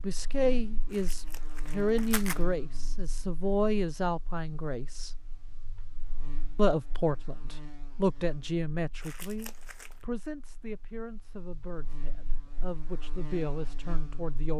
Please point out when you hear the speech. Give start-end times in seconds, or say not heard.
0.0-5.1, 6.5-14.5.